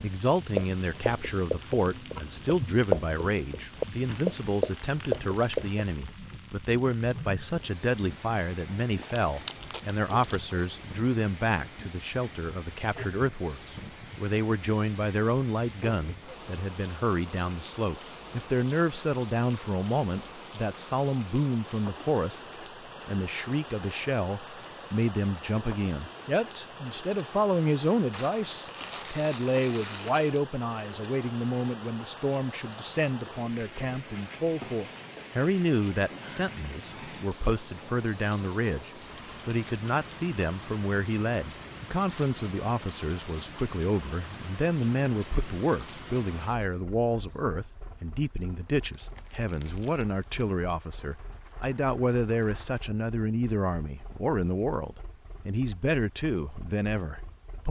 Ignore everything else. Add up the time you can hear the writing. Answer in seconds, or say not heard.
5 s.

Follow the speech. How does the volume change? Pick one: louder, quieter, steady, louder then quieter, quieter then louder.
steady.